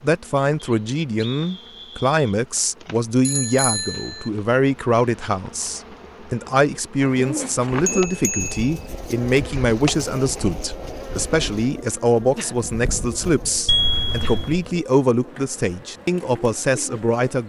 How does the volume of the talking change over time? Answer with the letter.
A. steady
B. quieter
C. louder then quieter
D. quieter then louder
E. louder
A.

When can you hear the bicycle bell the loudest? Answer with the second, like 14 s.
14 s.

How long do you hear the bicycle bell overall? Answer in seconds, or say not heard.
3 s.